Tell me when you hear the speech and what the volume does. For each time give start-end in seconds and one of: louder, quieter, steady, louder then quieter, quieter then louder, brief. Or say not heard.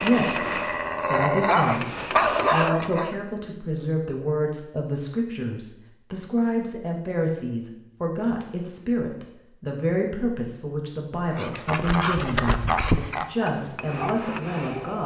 0.0-15.0 steady.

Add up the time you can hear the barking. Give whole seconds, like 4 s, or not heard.
7 s.